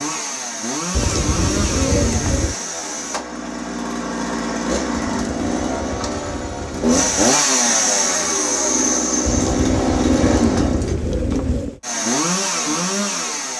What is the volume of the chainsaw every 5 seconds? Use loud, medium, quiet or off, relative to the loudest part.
medium, loud, loud.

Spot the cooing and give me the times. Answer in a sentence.
The cooing can be heard from 0.9 to 2.5 s, from 5.0 to 7.3 s and from 9.2 to 11.8 s.